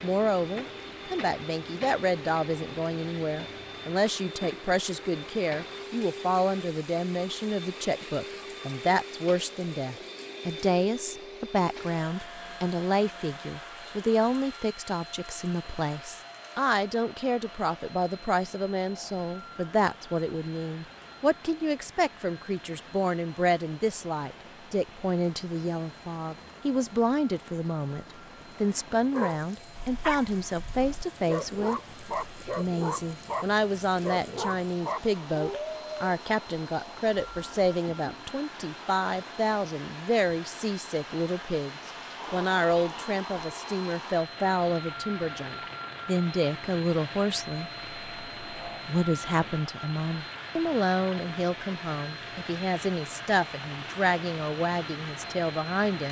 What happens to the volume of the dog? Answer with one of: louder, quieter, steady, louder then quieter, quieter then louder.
steady.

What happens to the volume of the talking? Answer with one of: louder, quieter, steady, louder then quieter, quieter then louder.
steady.